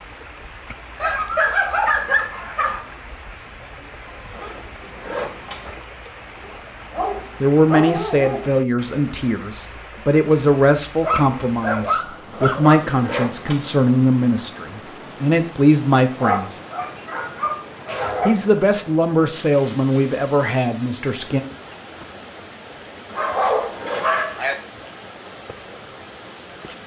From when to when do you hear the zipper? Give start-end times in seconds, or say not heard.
4.3-5.8, 12.3-13.7, 23.1-24.1.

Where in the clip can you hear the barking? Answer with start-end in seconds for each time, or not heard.
1.0-2.9, 6.4-8.5, 11.0-12.8, 16.2-18.4, 23.1-24.6.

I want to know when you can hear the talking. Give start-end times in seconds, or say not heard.
7.4-16.6, 18.2-21.4.